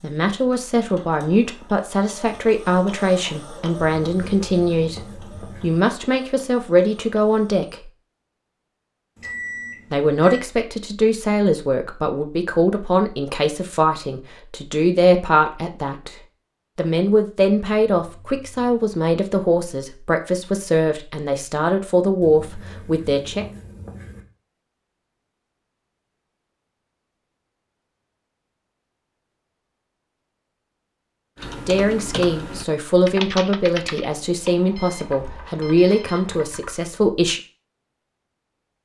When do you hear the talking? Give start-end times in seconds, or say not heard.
0.0-7.9, 9.9-16.1, 16.8-23.4, 31.6-37.4.